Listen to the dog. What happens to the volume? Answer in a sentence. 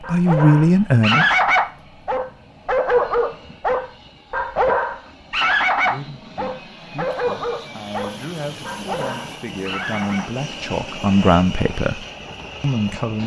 The loudness of the dog goes down.